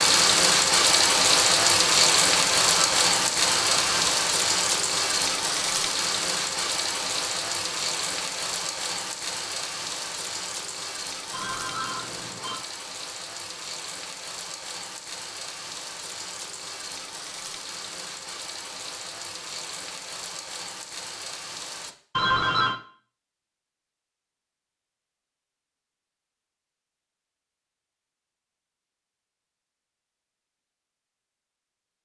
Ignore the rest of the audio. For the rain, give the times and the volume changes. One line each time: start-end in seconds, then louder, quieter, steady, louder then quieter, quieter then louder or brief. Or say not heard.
0.0-21.9 quieter.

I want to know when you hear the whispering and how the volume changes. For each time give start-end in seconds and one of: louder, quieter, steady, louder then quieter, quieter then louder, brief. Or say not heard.
not heard.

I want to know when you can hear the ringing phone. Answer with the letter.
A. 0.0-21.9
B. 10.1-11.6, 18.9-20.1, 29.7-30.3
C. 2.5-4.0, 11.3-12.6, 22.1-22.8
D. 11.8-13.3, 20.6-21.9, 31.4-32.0
C.